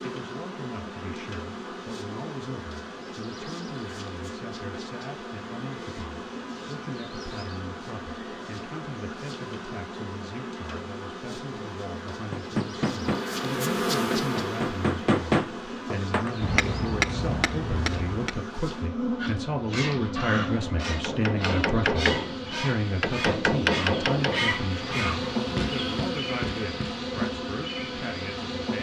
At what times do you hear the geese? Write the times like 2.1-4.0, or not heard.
19.1-25.4.